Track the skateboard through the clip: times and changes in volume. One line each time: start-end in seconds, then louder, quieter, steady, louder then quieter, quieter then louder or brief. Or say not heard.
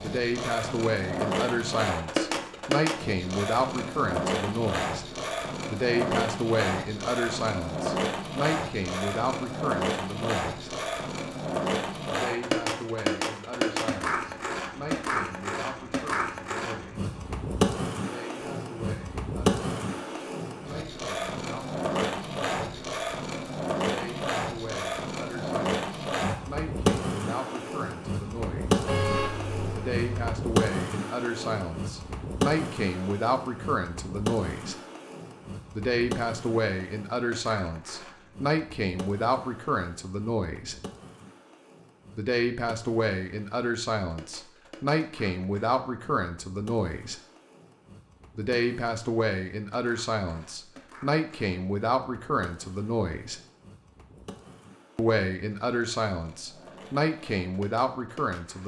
0.0-58.6 quieter.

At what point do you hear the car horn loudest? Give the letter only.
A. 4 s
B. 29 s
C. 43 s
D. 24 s
B.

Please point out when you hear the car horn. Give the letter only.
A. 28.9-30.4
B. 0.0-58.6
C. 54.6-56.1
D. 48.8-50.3
A.